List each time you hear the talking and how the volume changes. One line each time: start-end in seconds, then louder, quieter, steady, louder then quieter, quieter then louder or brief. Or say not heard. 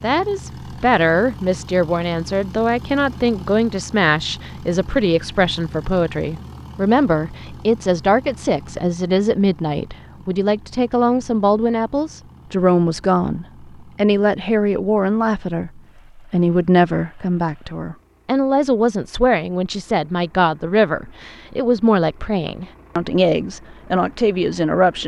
0.0-25.0 steady.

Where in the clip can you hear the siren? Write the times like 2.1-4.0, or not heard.
not heard.